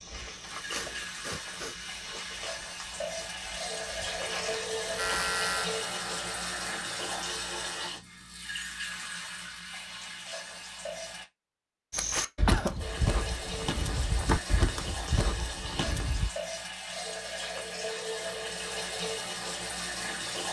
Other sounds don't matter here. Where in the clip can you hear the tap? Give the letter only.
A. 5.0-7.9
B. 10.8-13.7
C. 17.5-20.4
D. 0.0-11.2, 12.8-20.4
D.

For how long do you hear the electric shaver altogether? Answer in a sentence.
The electric shaver can be heard for 3 seconds in total.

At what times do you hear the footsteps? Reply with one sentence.
The footsteps can be heard from 0.0 to 5.3 s and from 11.9 to 16.3 s.